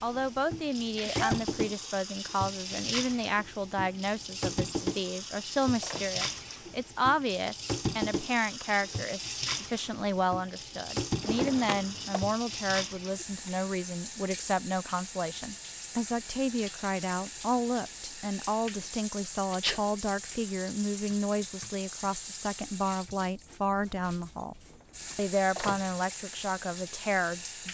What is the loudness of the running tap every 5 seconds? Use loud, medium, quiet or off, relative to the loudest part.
loud, loud, loud, medium, medium, medium.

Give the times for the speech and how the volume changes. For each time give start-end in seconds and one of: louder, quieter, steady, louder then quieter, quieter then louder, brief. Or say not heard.
0.0-24.6 steady
25.1-27.6 brief.